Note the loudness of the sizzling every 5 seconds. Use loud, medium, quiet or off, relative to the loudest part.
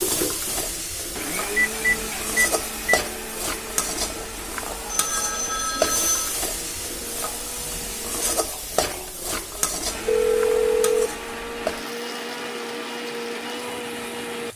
loud, loud, medium.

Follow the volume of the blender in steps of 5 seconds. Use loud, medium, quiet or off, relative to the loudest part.
loud, medium, loud.